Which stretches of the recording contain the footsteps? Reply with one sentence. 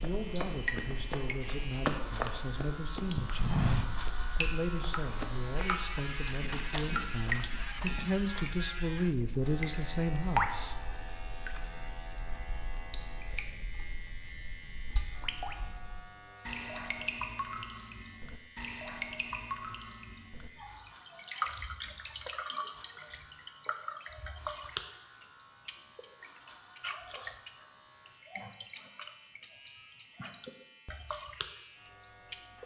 The footsteps can be heard from 0.0 to 8.5 s.